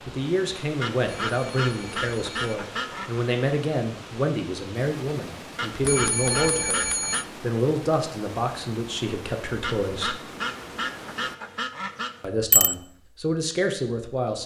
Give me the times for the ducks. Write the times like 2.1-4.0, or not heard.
0.8-3.2, 5.5-7.2, 9.6-12.2.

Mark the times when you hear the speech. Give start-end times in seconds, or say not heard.
0.1-10.2, 12.2-14.4.